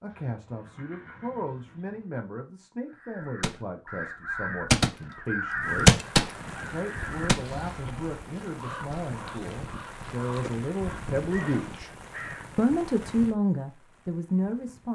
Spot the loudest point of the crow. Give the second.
6 s.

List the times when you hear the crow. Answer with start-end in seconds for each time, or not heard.
3.0-12.5.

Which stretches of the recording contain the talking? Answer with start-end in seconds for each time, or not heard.
0.0-5.9, 6.7-11.9, 12.6-14.8.